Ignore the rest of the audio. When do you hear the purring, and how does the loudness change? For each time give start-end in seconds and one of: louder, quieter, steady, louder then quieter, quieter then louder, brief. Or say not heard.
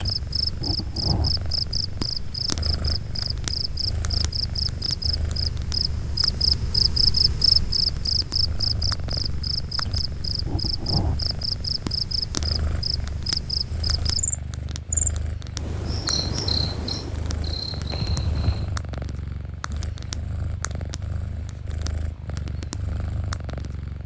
0.0-24.0 steady.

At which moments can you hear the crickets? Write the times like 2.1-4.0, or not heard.
0.0-18.8.